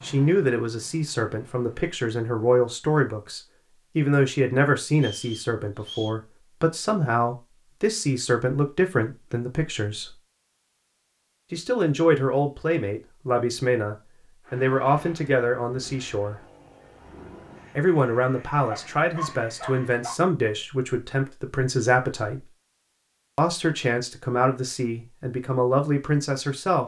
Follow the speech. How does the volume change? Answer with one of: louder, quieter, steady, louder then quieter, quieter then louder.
steady.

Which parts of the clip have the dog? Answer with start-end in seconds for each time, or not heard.
18.6-20.1.